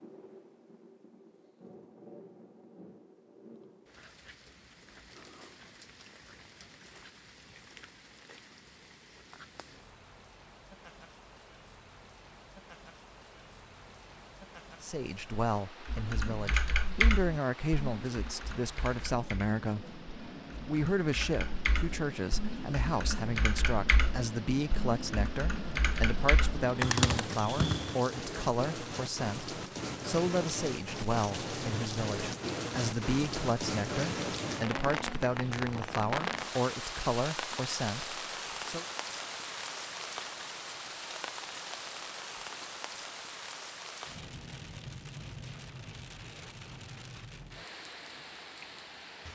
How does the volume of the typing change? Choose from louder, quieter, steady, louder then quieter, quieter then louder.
quieter then louder.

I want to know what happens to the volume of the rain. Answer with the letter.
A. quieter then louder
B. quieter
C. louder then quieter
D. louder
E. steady
C.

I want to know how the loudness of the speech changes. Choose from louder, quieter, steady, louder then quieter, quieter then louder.
steady.